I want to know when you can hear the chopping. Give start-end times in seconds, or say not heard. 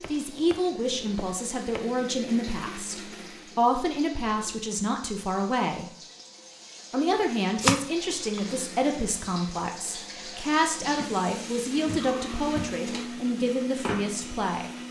0.0-1.8, 7.6-8.6.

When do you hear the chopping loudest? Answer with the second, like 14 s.
8 s.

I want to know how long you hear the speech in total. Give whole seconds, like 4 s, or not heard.
14 s.